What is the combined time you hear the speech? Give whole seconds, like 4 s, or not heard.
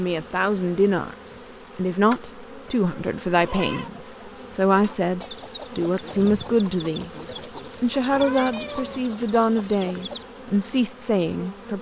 11 s.